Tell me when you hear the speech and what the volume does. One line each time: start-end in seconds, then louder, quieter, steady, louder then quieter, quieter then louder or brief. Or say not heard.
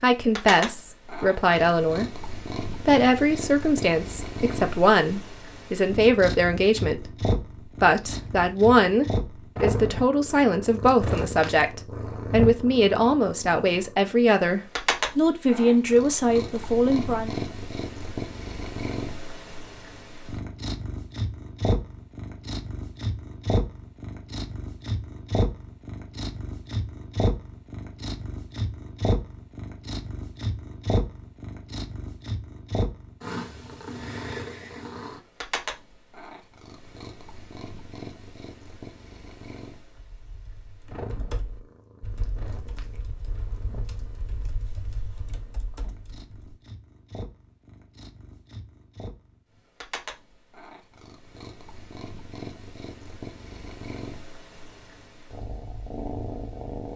0.0-17.3 steady.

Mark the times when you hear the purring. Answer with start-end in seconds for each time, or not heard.
0.1-56.9.